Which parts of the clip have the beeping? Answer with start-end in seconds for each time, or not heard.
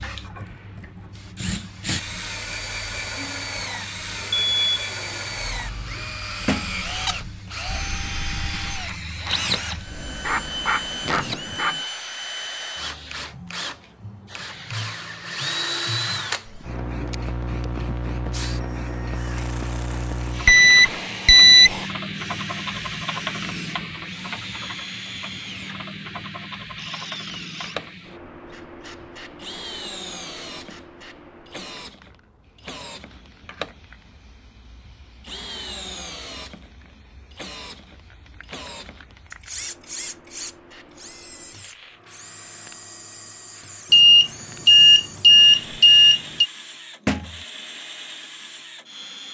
4.3-6.2, 20.4-21.8, 43.9-46.5.